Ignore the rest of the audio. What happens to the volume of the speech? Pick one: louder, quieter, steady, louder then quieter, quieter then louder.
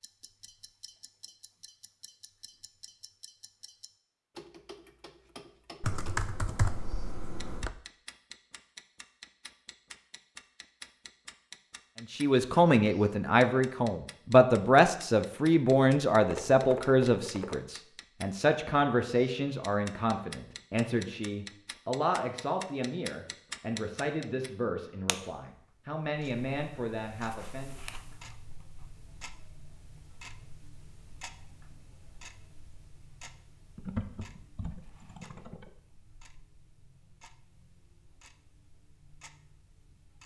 quieter.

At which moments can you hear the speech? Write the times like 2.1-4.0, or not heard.
12.0-27.8.